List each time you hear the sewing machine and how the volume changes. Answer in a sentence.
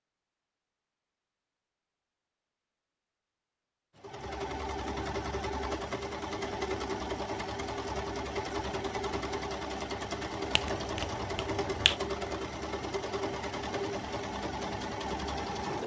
The sewing machine can be heard from 4.0 to 15.8 s, at a steady volume.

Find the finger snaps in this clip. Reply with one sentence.
The finger snaps can be heard from 10.5 to 11.9 s.